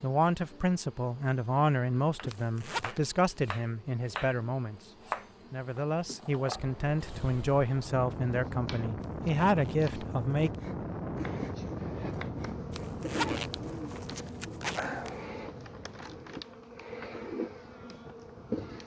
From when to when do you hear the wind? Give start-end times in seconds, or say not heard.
6.5-18.8.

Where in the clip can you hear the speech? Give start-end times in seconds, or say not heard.
0.0-10.5.